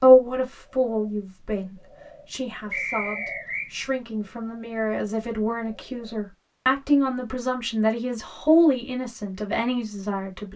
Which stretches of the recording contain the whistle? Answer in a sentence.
You can hear the whistle from 2.7 to 3.7 s.